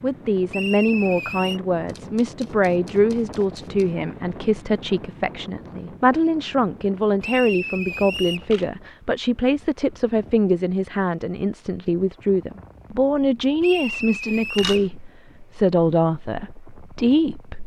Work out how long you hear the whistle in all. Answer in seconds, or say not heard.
4 s.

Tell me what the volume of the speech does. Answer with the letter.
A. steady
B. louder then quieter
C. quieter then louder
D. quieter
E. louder
A.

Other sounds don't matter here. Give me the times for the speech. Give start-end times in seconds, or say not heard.
0.0-17.6.